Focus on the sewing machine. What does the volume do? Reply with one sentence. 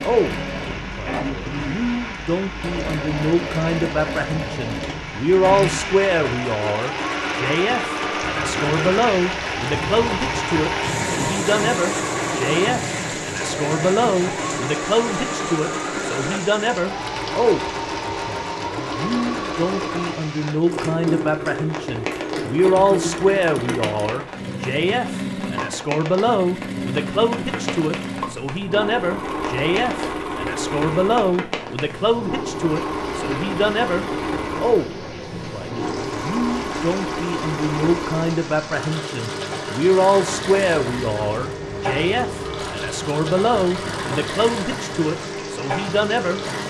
The loudness of the sewing machine stays about the same.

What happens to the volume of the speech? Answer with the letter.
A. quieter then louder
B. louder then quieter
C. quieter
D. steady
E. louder
D.